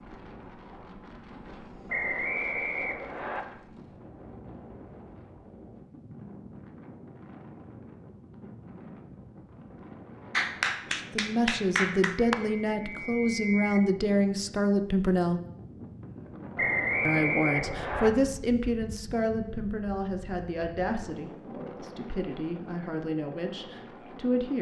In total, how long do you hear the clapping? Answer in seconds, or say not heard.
2 s.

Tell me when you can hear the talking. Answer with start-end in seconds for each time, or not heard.
10.9-15.4, 17.1-24.5.